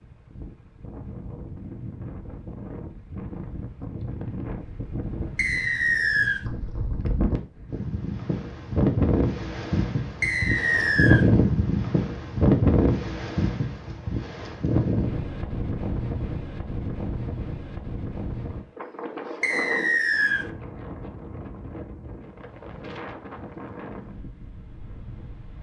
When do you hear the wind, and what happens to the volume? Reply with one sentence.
The wind can be heard from 0.0 to 25.5 s, getting louder then quieter.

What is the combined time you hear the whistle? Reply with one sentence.
The whistle can be heard for 3 seconds in total.